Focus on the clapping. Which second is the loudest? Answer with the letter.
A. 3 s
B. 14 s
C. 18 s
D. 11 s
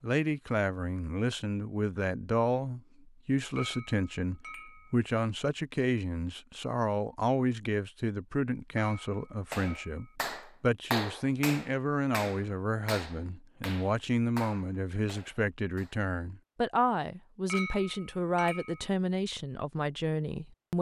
D.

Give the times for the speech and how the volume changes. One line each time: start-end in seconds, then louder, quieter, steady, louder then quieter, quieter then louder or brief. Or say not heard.
0.0-20.7 steady.